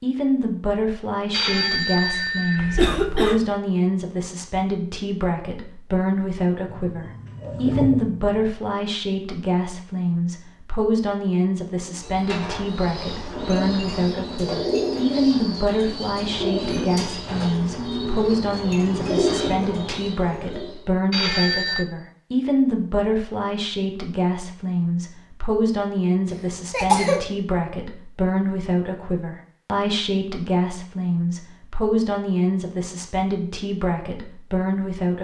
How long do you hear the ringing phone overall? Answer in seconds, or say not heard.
2 s.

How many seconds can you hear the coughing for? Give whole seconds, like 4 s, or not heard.
2 s.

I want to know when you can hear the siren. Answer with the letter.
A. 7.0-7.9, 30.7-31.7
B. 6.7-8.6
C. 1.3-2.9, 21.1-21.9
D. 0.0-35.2
B.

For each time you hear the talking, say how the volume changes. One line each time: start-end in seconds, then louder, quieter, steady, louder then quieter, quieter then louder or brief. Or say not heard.
0.0-35.2 steady.